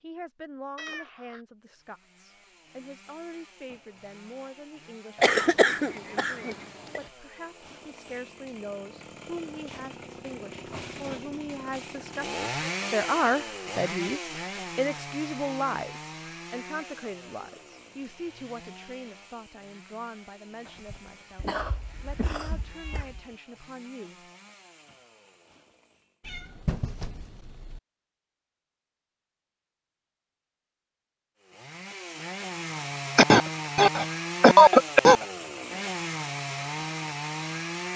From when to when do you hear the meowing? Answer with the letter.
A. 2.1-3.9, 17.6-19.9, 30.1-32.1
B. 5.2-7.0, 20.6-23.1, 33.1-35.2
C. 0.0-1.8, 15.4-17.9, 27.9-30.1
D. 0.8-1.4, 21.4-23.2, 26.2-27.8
D.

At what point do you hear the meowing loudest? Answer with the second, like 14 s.
27 s.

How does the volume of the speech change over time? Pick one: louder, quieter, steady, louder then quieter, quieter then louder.
louder then quieter.